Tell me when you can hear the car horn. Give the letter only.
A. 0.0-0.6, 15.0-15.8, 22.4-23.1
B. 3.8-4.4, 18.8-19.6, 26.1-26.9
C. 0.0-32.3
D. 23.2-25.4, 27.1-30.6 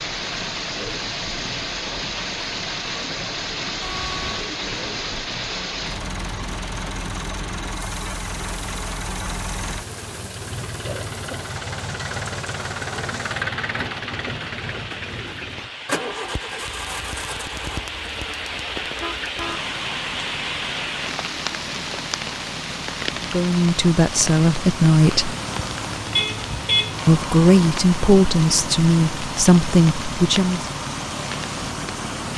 B.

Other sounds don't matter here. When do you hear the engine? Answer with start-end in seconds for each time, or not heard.
0.0-32.3.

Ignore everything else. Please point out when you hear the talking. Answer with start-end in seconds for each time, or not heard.
23.2-25.4, 27.1-30.6.